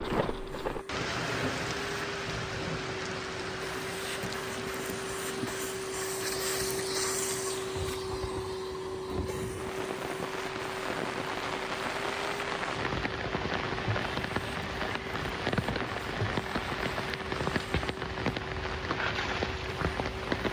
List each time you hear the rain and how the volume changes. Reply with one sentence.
The rain can be heard from 0.0 to 20.4 s, getting quieter then louder.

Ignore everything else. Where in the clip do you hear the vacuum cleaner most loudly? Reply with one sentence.
The loudest moment of the vacuum cleaner is at 7 seconds.